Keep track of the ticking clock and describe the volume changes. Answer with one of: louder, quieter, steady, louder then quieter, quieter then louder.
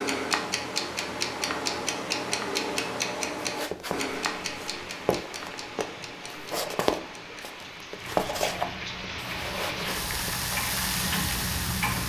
quieter then louder.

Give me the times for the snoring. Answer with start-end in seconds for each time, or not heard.
not heard.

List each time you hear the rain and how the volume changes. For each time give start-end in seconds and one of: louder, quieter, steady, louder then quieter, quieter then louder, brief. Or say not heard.
4.2-12.0 louder.